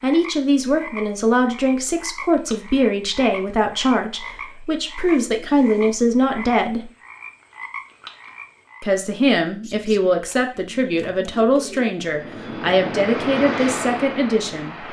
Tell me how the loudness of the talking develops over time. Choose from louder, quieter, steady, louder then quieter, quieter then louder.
steady.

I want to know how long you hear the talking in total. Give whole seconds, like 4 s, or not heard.
13 s.